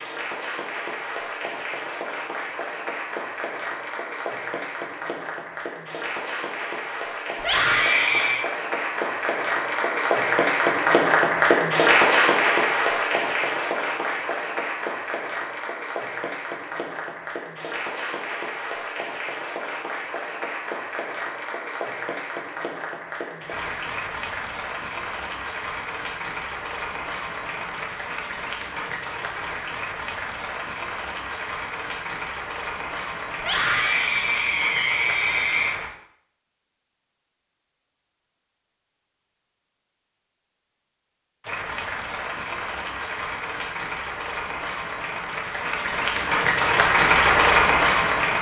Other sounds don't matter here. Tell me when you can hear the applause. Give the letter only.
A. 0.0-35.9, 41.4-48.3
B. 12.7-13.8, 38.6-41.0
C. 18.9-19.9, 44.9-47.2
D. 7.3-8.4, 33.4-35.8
A.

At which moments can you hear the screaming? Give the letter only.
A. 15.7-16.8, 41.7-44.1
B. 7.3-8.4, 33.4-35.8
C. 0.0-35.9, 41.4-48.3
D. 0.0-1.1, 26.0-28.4
B.